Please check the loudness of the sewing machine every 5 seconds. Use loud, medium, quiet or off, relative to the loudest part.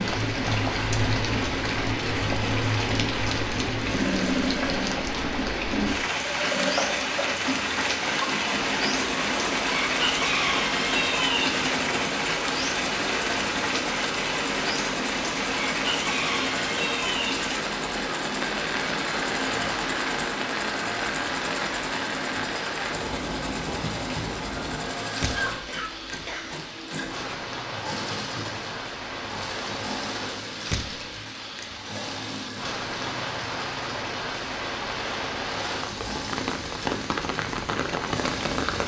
loud, loud, loud, loud, loud, medium, medium, medium.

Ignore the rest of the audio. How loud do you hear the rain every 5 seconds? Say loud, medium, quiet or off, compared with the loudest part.
loud, loud, loud, loud, medium, medium, medium, loud.